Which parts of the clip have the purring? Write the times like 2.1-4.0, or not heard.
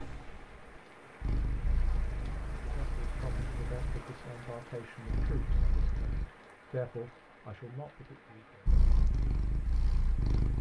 0.0-6.3, 8.7-10.5.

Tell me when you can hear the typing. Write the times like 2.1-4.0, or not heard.
not heard.